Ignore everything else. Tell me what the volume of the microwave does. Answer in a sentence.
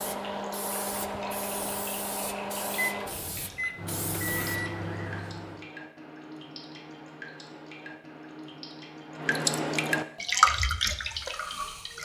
The volume of the microwave stays about the same.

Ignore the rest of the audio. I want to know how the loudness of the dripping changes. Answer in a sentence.
The loudness of the dripping goes up.